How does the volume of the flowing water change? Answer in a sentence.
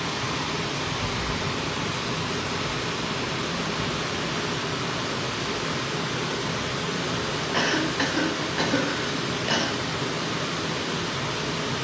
The loudness of the flowing water stays about the same.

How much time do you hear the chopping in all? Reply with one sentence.
You can't hear the chopping here.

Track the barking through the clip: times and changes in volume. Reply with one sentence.
The barking can't be heard in this clip.